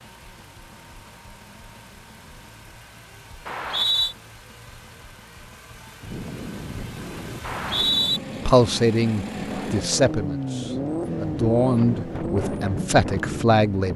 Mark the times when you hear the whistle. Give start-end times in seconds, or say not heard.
3.5-4.2, 7.4-8.2.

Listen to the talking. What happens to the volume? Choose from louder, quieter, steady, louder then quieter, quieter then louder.
steady.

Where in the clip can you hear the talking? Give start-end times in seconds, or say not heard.
8.4-13.9.